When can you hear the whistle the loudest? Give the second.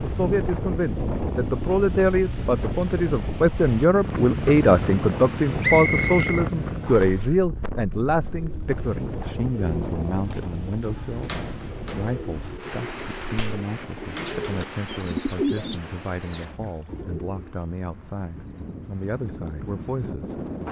6 s.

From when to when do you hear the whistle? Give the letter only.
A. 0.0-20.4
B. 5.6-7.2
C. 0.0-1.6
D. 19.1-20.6
B.